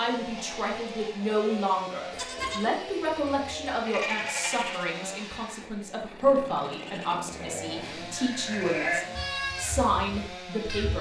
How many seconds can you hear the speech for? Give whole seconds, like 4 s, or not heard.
11 s.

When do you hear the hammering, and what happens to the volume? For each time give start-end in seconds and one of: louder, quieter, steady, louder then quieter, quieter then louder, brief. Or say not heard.
not heard.